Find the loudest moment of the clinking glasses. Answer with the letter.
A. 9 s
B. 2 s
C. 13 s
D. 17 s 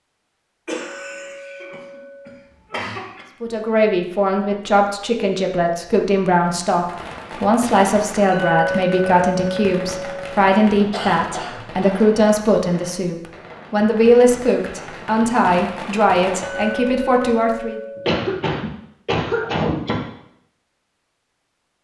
A.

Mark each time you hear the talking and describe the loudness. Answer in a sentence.
The talking can be heard from 3.4 to 17.8 s, at a steady volume.